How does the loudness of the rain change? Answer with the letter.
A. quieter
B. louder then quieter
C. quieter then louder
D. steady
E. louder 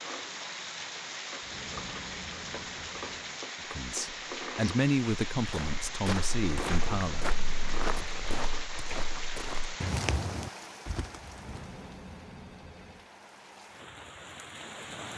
A.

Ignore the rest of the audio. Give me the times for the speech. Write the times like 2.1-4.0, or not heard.
3.7-7.2.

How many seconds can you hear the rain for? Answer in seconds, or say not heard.
15 s.